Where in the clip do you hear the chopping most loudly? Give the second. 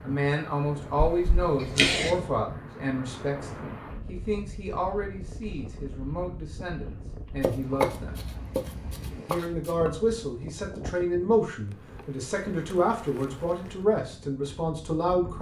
8 s.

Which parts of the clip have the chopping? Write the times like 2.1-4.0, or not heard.
7.4-9.9.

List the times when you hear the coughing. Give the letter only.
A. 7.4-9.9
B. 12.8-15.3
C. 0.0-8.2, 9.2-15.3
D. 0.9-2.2
D.